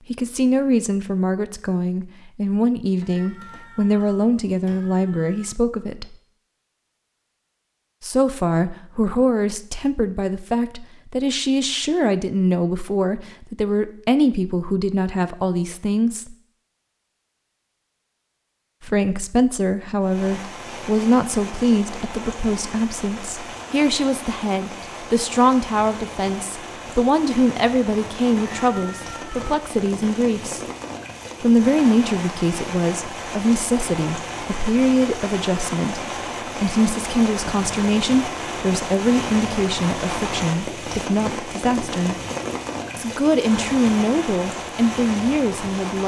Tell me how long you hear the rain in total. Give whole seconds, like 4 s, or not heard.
26 s.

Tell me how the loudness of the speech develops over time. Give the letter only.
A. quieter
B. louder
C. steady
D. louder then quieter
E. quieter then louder
C.